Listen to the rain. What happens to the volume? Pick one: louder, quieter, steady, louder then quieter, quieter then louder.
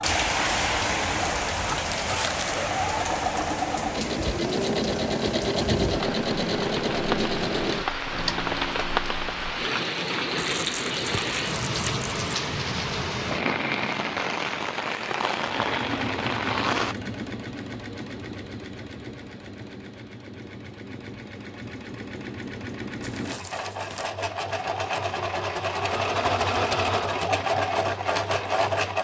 quieter then louder.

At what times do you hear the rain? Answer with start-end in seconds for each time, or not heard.
0.0-16.9.